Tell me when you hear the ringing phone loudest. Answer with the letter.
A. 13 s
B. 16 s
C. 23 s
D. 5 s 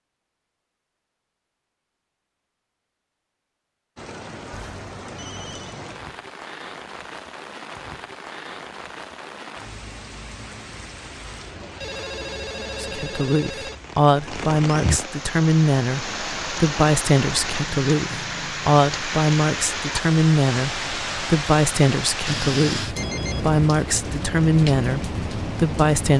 C.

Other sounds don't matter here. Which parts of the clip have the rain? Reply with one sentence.
You can hear the rain from 4.0 to 26.1 s.